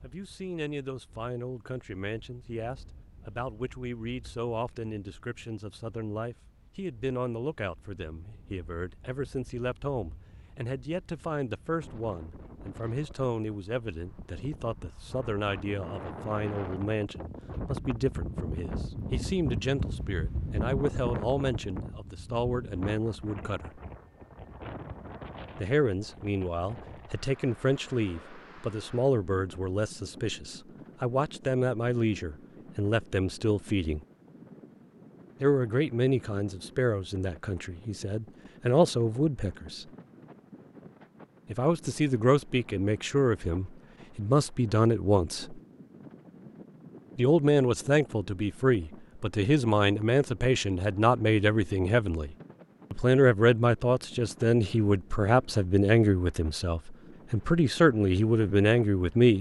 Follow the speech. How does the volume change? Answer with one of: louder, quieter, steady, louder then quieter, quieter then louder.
louder.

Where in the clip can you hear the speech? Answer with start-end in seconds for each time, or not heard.
0.0-23.8, 25.6-34.0, 35.4-39.9, 41.5-45.6, 47.1-59.3.